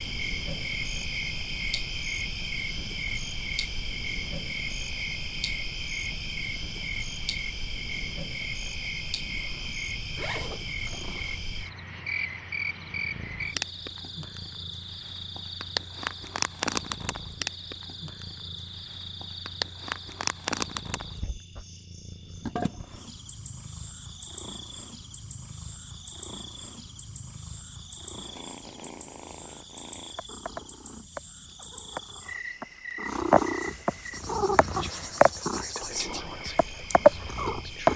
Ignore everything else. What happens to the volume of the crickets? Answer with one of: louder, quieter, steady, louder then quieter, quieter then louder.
quieter.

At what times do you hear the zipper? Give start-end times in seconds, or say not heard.
10.2-11.4.